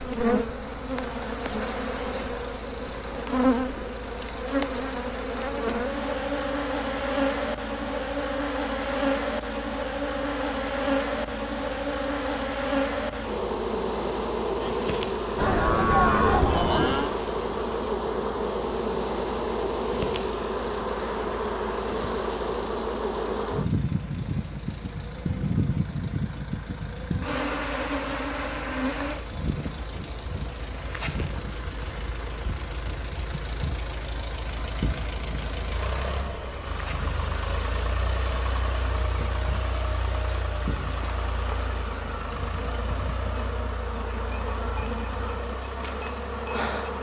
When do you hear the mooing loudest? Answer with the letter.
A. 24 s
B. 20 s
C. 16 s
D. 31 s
C.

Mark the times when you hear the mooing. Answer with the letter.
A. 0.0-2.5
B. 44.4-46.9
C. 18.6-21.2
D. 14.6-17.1
D.